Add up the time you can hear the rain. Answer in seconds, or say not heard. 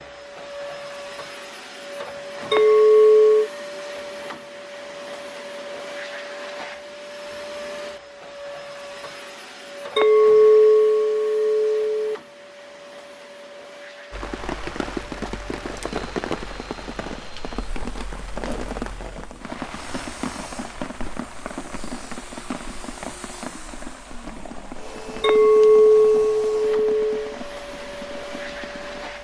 15 s.